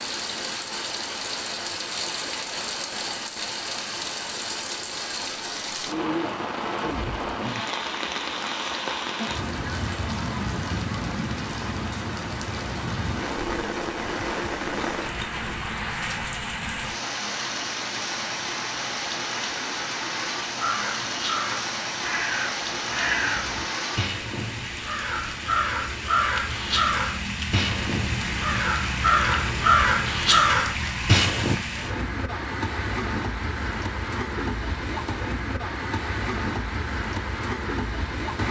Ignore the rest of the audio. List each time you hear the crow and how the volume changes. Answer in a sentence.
You can hear the crow from 20.6 to 31.6 s, getting louder.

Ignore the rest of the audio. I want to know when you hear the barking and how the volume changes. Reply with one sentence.
You can't hear the barking here.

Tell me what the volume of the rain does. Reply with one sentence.
The loudness of the rain stays about the same.